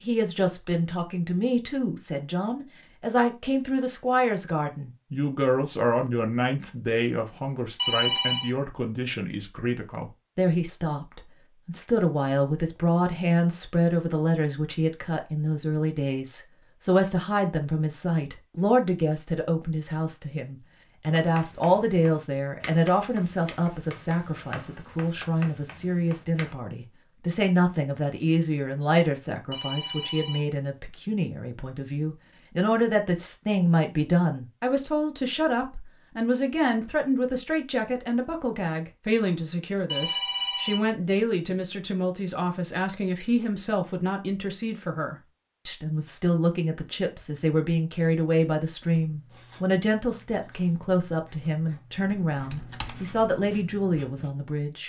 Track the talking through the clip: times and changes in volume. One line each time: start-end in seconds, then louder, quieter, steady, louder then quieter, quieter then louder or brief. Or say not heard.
0.0-54.8 steady.